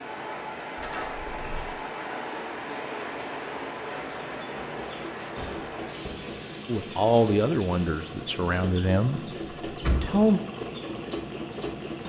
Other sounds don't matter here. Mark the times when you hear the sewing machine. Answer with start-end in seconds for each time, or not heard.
0.0-12.0.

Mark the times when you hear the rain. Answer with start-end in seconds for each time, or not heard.
0.0-12.0.